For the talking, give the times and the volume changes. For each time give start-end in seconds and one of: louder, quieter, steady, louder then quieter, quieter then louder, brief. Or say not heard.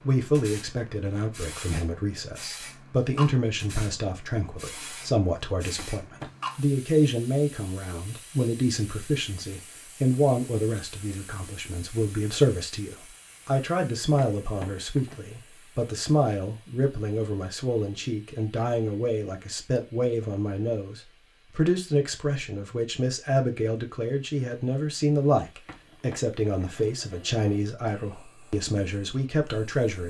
0.0-30.0 steady.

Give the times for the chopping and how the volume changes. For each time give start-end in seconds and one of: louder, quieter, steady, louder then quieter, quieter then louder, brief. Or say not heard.
not heard.